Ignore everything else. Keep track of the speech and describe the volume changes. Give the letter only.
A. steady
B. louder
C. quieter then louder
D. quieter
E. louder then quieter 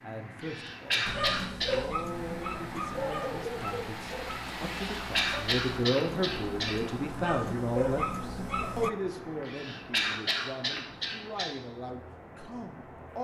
E.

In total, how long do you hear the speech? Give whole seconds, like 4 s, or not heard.
13 s.